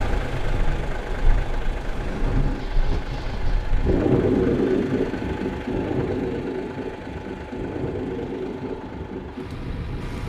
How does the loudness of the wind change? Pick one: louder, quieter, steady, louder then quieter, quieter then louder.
louder then quieter.